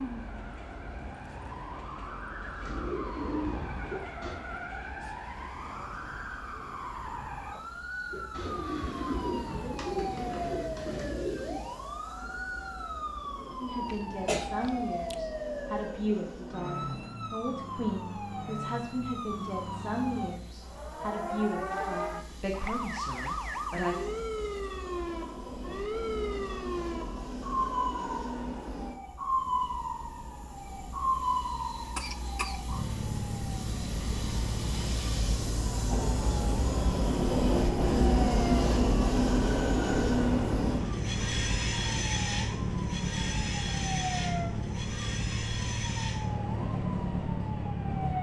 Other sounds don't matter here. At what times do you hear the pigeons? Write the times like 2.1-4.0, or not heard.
2.6-4.4, 8.1-11.7.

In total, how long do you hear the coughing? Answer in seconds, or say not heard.
2 s.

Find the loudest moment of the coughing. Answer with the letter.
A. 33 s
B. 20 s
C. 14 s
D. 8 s
C.